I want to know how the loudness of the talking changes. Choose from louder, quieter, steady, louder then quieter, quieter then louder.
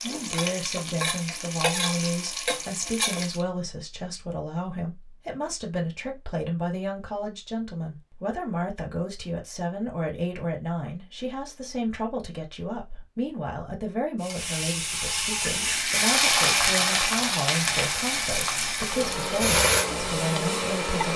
steady.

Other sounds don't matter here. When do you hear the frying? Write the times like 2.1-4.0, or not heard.
0.0-3.5, 14.2-21.1.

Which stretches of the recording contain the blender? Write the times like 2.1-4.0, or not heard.
15.6-21.1.